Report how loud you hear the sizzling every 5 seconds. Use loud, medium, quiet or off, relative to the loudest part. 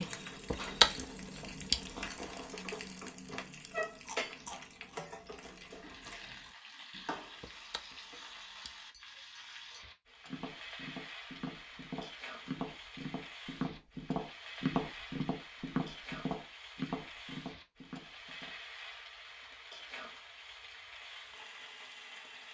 loud, medium, medium, medium, medium.